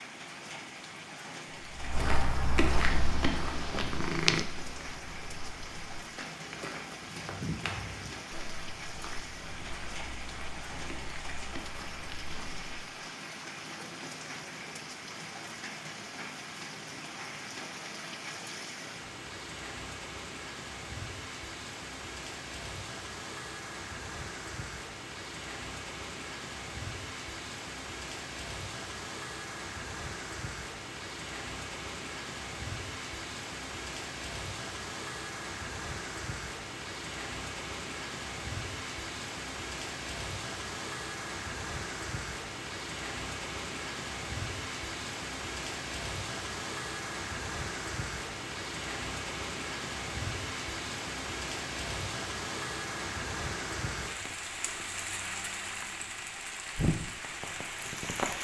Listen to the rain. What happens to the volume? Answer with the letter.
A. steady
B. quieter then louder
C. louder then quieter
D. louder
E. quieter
D.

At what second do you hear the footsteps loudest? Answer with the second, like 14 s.
3 s.